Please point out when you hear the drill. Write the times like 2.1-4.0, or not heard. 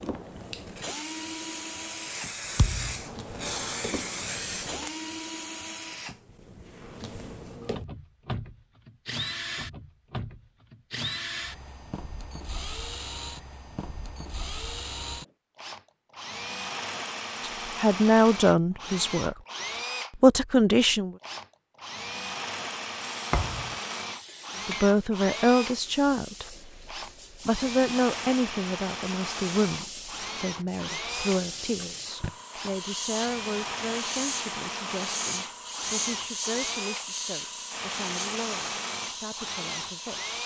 0.0-40.4.